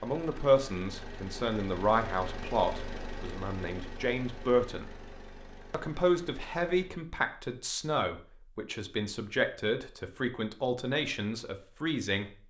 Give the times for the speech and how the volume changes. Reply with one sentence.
You can hear the speech from 0.0 to 4.8 s, getting quieter then louder; and from 5.7 to 12.4 s, at a steady volume.